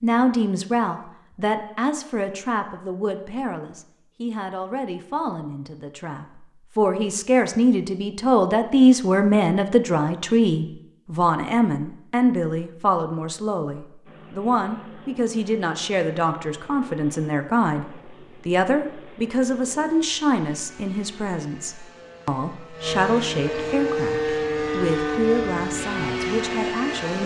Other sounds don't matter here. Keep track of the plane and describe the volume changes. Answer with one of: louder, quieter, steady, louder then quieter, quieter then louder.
louder.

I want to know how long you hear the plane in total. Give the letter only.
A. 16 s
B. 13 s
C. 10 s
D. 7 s
B.